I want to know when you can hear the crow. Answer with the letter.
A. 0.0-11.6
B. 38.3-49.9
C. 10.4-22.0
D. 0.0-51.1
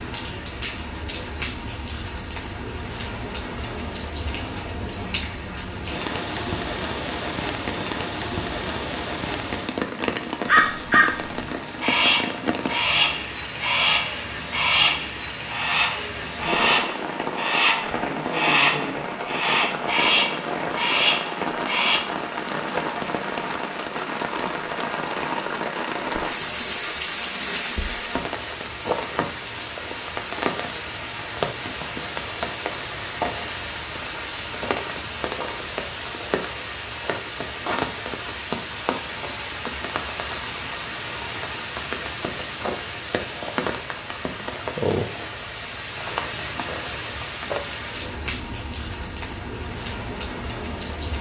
C.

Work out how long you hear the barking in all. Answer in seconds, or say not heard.
not heard.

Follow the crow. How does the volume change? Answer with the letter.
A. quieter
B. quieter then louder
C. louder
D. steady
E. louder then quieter
D.